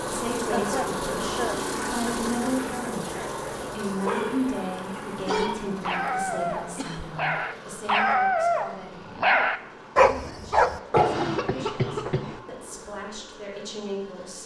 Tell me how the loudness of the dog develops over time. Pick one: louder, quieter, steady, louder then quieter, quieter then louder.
louder.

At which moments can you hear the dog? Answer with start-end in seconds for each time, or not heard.
3.0-11.2.